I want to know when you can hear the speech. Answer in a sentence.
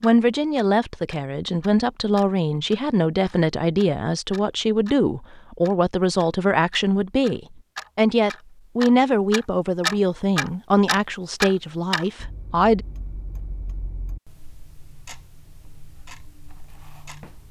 You can hear the speech from 0.0 to 12.8 s.